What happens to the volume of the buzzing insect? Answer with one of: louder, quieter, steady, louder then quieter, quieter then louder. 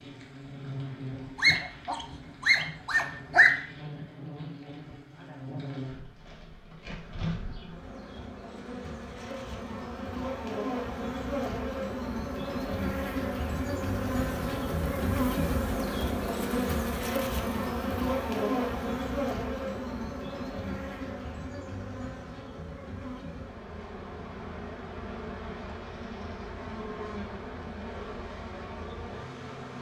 louder then quieter.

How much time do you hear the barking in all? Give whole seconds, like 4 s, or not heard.
2 s.